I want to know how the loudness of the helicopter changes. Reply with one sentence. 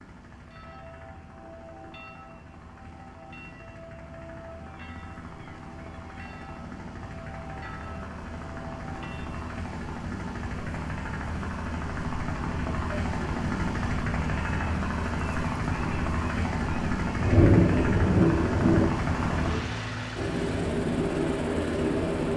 The loudness of the helicopter goes up.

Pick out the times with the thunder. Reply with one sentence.
You can hear the thunder from 17.2 to 18.9 s.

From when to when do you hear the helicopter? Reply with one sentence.
The helicopter can be heard from 0.0 to 22.3 s.